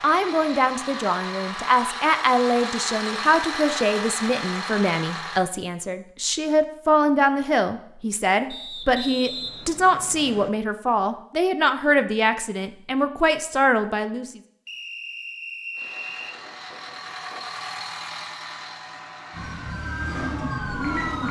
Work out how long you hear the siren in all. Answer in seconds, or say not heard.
2 s.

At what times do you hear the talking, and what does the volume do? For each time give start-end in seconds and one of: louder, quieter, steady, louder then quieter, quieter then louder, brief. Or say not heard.
0.0-14.4 steady.